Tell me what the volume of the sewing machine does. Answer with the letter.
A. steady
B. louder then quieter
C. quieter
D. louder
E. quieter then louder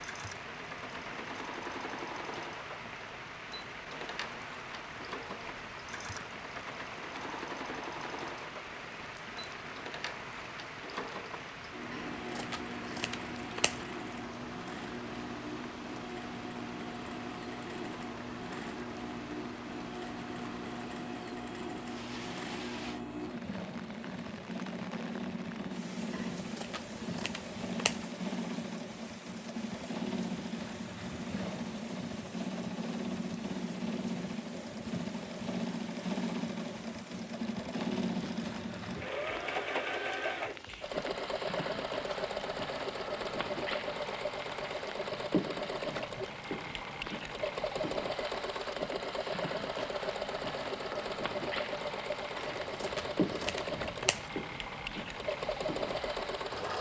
D.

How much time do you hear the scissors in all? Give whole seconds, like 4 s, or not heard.
6 s.